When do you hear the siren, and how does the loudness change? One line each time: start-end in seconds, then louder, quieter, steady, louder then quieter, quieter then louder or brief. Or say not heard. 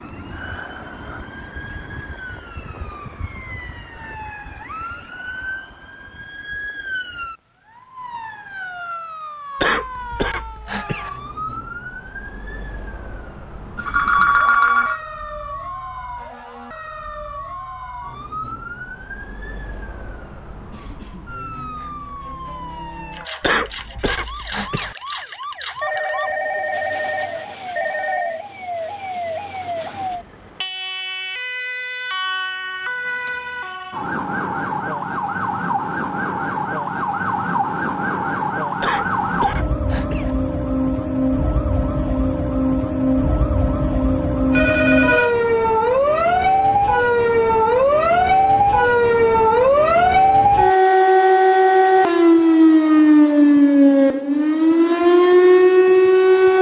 0.0-56.5 louder.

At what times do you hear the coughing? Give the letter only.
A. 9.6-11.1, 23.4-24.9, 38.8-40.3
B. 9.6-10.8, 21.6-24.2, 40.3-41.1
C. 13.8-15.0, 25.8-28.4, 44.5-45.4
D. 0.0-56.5
A.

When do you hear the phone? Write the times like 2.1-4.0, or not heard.
13.8-15.0, 25.8-28.4, 44.5-45.4.